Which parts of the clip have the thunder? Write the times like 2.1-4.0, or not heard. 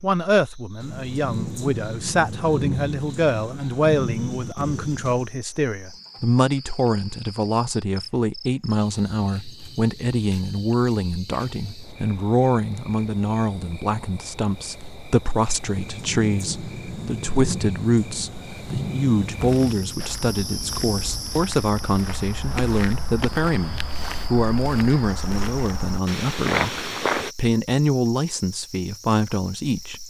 0.8-5.3, 15.6-20.1.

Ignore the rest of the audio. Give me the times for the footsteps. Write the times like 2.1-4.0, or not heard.
19.4-27.3.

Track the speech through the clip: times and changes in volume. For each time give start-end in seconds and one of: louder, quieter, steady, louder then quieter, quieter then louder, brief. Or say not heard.
0.0-30.0 steady.